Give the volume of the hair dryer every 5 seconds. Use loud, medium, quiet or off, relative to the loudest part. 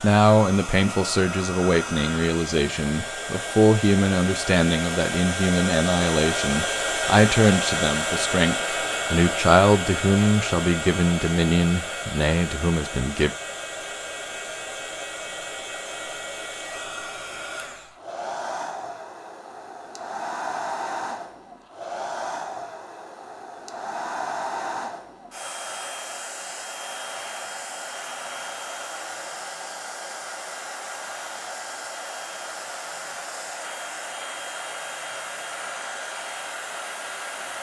medium, loud, medium, medium, medium, medium, medium, medium.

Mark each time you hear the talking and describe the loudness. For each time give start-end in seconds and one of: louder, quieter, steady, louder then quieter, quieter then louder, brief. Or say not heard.
0.0-13.3 steady.